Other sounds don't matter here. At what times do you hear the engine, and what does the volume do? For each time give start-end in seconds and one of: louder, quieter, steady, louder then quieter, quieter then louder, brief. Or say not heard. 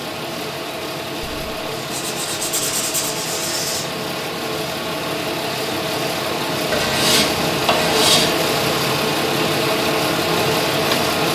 0.0-11.2 louder.